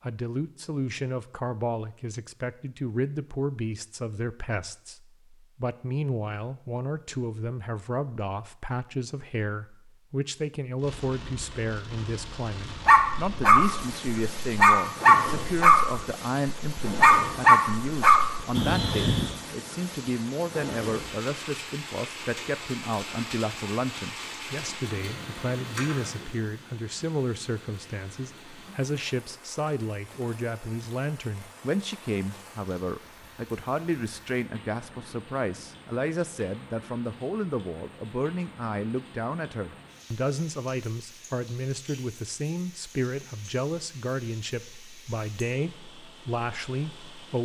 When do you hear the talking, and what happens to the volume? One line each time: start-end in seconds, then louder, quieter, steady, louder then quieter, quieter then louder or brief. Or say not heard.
0.0-47.3 steady.